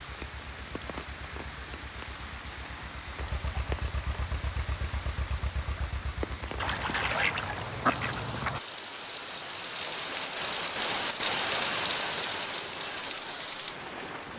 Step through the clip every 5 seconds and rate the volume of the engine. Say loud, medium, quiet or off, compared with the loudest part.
loud, loud, off.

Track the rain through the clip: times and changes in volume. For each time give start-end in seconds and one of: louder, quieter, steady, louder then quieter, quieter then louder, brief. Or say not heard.
0.0-14.3 louder.